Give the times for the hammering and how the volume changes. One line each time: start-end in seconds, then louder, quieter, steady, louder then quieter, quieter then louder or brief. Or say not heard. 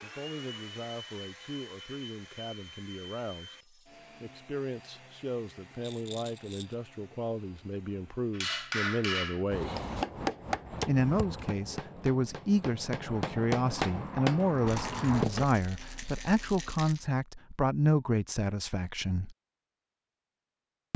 8.3-15.5 quieter then louder.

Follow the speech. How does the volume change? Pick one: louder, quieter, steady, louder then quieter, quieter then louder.
louder.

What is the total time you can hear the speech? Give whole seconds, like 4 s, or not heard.
18 s.